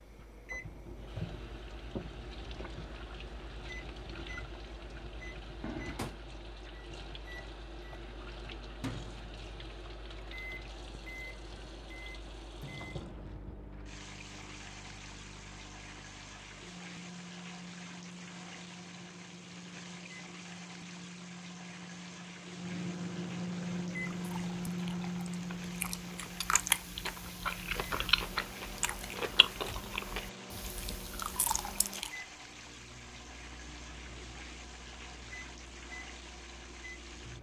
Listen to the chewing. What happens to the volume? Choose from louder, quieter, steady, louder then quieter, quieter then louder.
louder then quieter.